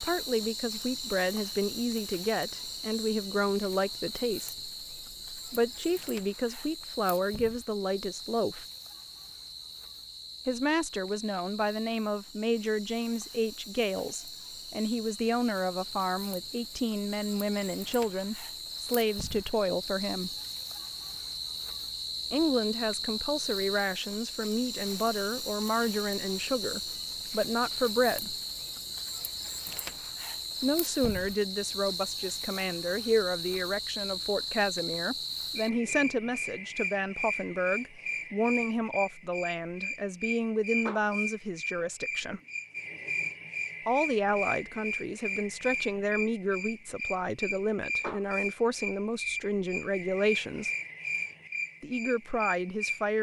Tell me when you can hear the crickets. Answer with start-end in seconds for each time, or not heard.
0.0-53.1.